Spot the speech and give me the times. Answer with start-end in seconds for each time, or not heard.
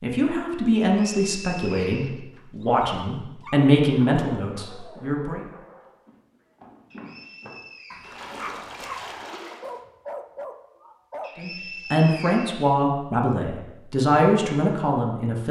0.0-5.4, 11.3-15.4.